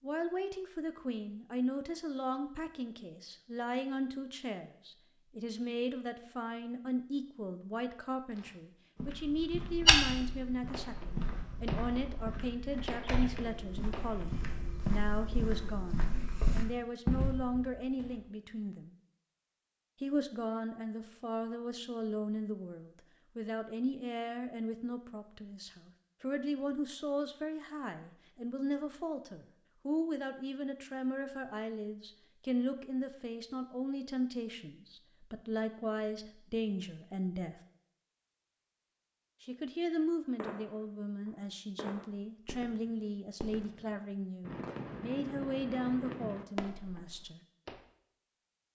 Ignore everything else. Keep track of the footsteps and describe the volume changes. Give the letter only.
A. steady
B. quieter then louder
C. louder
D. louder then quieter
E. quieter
B.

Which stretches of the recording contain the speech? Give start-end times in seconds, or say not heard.
0.0-18.9, 20.0-37.5, 39.4-47.4.